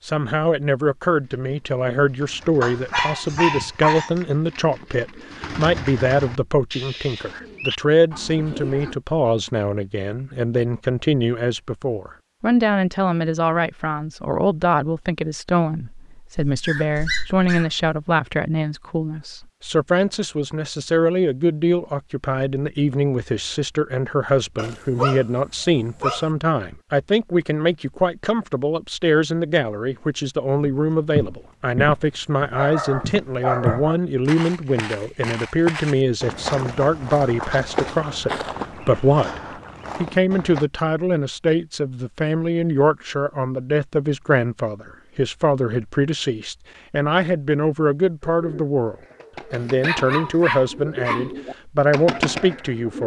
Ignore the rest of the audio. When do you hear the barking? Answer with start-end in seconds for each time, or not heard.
2.6-4.2, 16.4-17.8, 24.6-26.3, 32.5-34.0, 49.5-51.3.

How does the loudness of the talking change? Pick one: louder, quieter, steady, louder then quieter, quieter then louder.
steady.